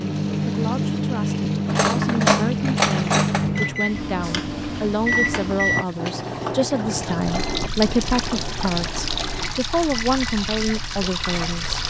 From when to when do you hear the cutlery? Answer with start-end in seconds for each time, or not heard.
1.6-3.5, 6.0-6.5.